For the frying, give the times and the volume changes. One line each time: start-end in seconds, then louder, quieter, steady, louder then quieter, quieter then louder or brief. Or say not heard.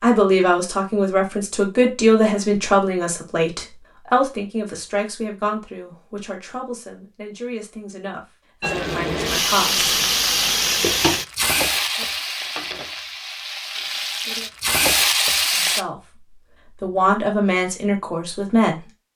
8.6-15.8 quieter then louder.